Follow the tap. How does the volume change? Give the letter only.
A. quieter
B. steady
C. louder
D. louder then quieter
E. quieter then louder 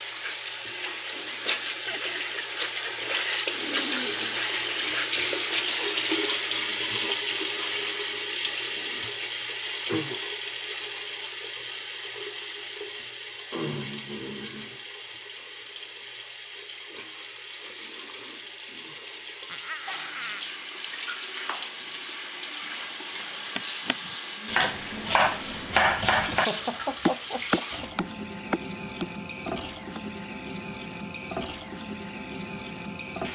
A.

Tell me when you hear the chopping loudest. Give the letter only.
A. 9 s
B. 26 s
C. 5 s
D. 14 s
B.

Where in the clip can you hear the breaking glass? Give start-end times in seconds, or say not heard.
26.4-26.9.